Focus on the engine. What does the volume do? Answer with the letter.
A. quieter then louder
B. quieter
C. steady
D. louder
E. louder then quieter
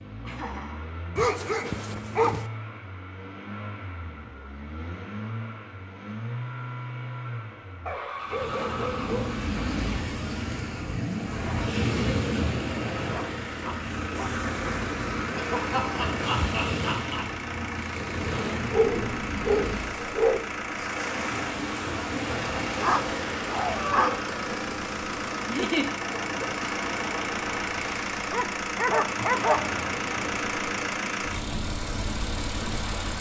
D.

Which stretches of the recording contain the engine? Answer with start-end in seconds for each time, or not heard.
0.0-33.1.